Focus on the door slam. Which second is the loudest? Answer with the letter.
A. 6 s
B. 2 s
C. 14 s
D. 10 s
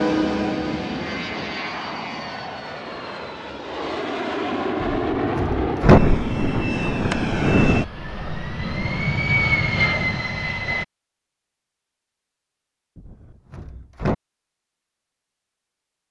A.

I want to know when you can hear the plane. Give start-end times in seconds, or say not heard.
0.0-10.8.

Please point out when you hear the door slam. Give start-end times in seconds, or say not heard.
4.8-6.0, 12.9-14.2.